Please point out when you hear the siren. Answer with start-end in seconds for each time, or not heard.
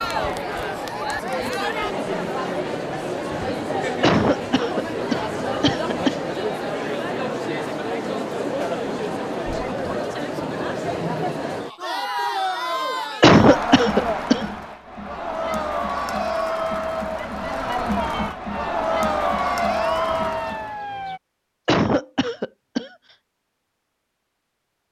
18.5-21.2.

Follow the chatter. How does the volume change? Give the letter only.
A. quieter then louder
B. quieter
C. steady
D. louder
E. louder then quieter
C.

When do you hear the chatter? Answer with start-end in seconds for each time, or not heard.
0.0-20.8.